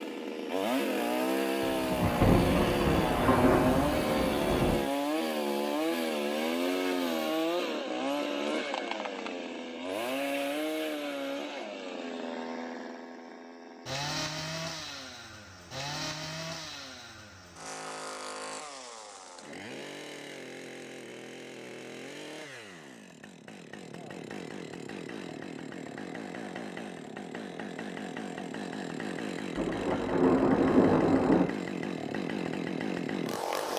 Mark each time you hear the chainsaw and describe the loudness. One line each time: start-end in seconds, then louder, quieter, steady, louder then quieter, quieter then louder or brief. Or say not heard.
0.0-33.7 quieter then louder.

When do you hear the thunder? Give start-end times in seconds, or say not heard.
1.6-4.8, 29.6-31.4.